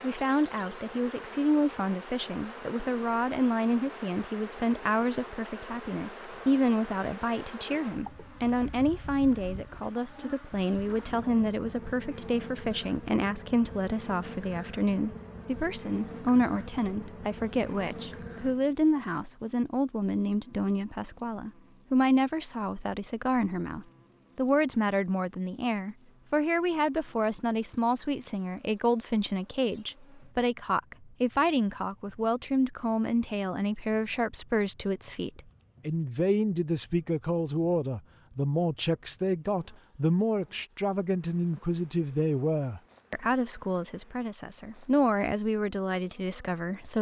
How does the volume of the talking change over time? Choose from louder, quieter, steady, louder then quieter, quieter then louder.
steady.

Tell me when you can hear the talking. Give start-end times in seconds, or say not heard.
0.0-46.9.